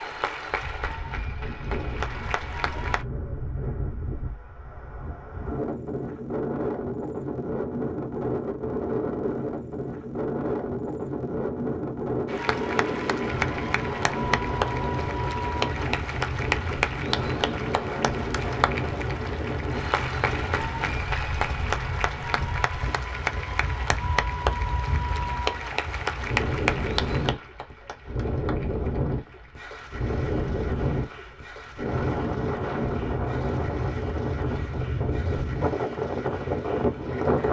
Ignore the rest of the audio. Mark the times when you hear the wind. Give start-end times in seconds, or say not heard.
0.0-37.4.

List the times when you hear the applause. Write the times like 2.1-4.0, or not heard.
0.0-3.0, 12.2-37.4.